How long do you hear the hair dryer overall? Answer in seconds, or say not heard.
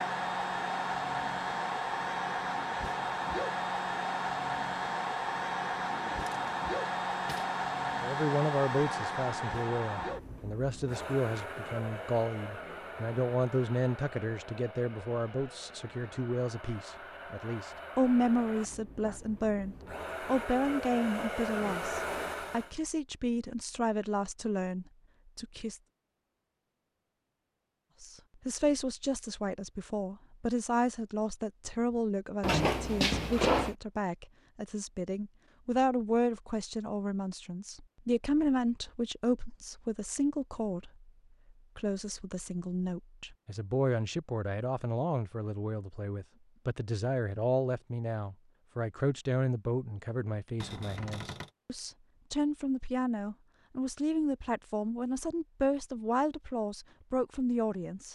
23 s.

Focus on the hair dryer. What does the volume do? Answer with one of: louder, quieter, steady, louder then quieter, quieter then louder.
quieter then louder.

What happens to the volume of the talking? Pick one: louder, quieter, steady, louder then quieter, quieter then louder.
steady.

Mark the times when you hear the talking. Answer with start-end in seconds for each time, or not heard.
8.0-25.8, 28.0-41.1, 41.8-58.1.